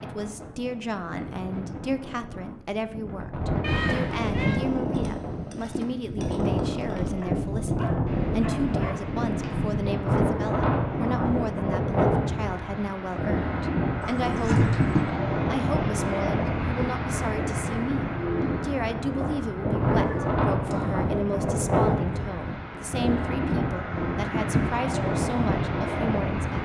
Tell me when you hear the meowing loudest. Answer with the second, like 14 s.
15 s.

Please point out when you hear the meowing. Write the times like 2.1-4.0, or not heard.
3.6-4.6, 14.0-15.1, 19.9-21.1.